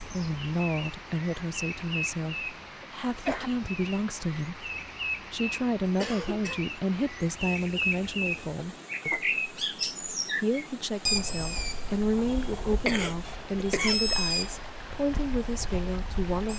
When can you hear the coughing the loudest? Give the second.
13 s.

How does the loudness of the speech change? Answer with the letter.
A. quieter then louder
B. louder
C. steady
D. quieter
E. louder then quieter
C.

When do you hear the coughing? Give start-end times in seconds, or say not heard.
2.8-3.5, 6.0-6.6, 12.3-14.2.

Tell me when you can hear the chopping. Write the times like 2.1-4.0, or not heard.
not heard.